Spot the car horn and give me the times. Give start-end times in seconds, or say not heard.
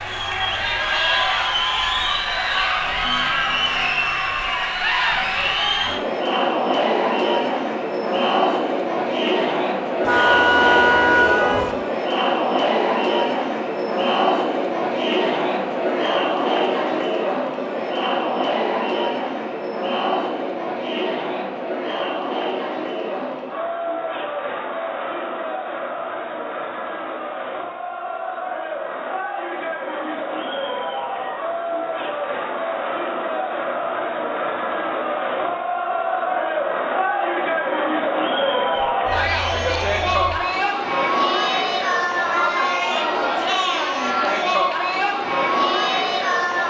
10.1-11.8, 38.8-40.4.